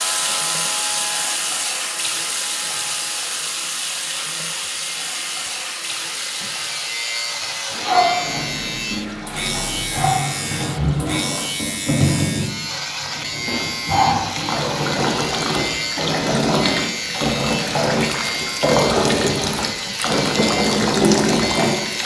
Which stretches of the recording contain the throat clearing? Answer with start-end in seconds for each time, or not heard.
not heard.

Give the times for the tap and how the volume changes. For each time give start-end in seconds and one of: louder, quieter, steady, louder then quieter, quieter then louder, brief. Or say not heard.
0.0-22.0 louder.